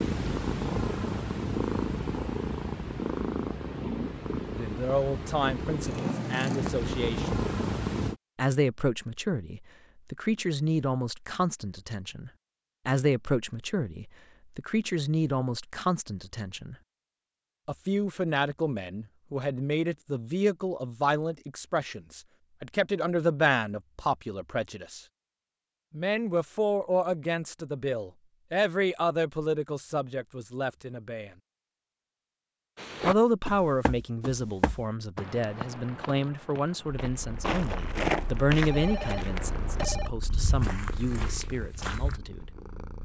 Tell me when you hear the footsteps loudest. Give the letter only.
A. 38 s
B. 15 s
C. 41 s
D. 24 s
A.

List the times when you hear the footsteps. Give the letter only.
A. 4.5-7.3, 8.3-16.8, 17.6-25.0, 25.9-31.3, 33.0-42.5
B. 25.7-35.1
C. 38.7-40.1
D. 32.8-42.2
D.